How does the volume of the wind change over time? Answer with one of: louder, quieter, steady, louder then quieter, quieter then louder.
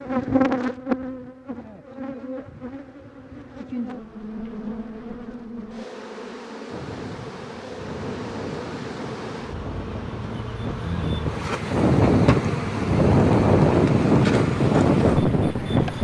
louder.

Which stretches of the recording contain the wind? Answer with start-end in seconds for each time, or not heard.
6.7-15.9.